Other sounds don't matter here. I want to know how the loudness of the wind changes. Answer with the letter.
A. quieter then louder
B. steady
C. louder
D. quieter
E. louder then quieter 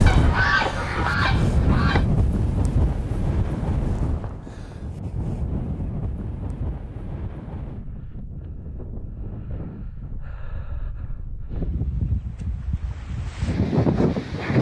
A.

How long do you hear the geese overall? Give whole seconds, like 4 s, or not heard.
2 s.